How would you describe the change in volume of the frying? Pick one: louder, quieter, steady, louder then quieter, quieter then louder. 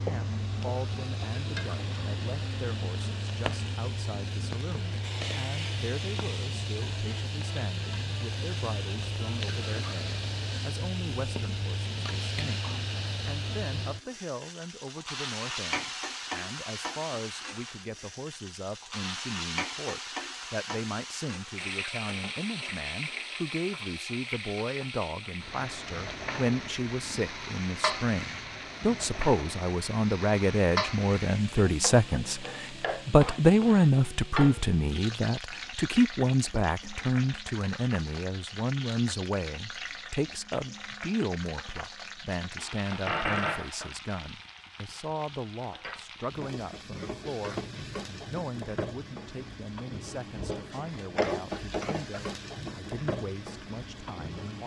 steady.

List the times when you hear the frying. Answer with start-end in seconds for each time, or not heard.
0.0-54.6.